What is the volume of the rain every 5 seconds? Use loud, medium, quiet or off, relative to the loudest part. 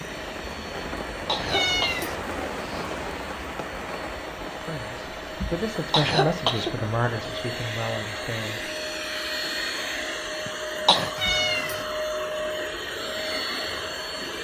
loud, medium, medium.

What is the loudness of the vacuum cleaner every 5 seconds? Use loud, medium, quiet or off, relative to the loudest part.
medium, loud, loud.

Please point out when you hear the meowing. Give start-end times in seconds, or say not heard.
1.4-2.1, 11.2-11.8.